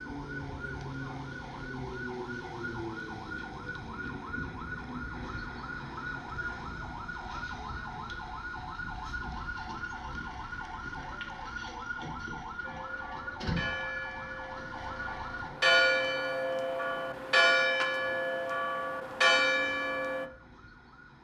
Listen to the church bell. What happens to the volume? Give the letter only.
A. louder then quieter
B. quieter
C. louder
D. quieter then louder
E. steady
C.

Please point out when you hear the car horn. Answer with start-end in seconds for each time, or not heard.
not heard.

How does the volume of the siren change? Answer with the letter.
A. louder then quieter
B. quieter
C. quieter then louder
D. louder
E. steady
B.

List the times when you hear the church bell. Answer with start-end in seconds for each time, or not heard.
12.6-20.2.